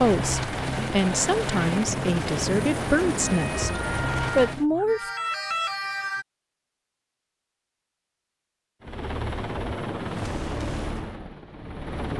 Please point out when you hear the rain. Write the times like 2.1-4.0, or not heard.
not heard.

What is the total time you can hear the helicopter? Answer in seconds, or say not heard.
8 s.